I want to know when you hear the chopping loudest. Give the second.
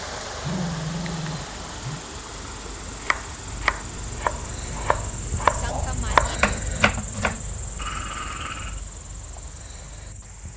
6 s.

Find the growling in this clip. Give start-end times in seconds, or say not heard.
0.2-2.0, 7.8-8.8.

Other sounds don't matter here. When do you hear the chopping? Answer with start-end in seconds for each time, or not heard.
3.0-7.4.